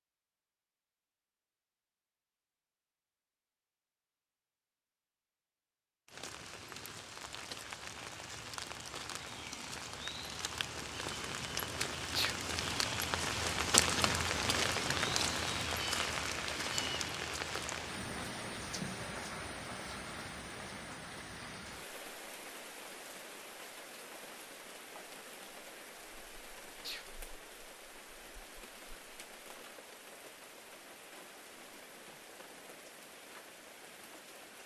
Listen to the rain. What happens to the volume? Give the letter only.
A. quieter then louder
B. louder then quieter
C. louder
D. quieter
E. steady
B.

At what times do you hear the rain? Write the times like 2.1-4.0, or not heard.
6.0-34.6.